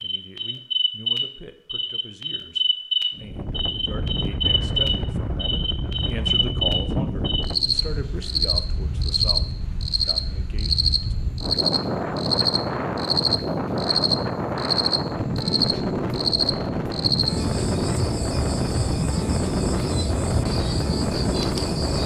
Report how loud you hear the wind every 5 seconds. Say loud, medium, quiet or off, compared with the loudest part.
medium, medium, loud, loud, loud.